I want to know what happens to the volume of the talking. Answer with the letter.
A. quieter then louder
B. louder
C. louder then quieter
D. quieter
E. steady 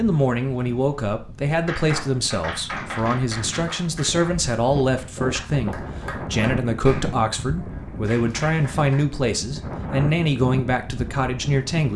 E.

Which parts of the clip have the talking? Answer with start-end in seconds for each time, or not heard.
0.0-11.9.